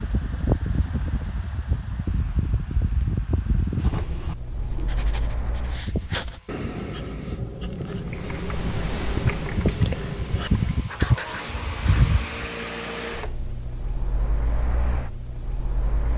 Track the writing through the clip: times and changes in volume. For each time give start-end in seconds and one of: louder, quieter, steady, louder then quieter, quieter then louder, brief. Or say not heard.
3.8-12.1 louder.